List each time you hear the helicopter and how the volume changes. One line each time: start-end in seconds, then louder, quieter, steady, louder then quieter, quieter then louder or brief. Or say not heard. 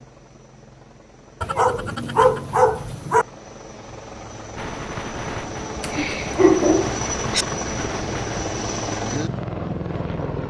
0.0-10.4 louder.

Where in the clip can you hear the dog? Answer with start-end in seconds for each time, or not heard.
1.4-3.2, 5.8-7.5.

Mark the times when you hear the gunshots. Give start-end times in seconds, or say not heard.
4.5-8.4.